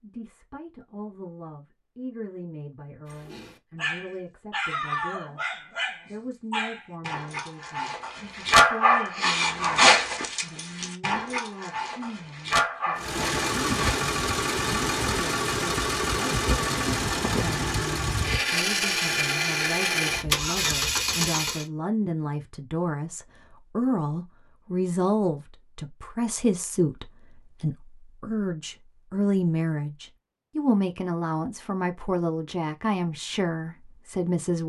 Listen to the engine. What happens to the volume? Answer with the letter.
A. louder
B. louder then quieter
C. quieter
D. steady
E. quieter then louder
D.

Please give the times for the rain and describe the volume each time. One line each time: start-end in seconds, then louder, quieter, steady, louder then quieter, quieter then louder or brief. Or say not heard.
not heard.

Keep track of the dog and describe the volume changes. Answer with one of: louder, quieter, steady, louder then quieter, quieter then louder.
louder then quieter.